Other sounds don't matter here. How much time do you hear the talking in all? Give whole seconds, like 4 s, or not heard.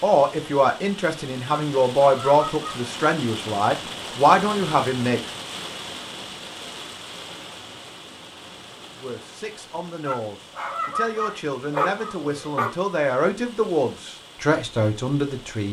12 s.